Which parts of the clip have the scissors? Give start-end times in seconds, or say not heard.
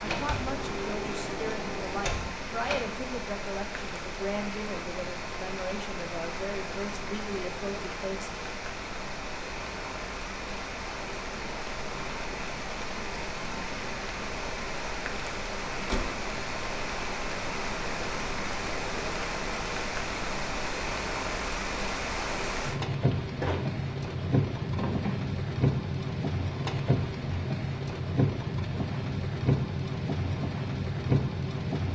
not heard.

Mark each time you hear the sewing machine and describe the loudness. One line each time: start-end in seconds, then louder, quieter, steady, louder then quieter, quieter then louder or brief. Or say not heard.
not heard.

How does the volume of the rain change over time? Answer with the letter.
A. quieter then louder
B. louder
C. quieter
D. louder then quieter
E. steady
B.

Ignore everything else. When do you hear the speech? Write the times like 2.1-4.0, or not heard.
0.0-8.3.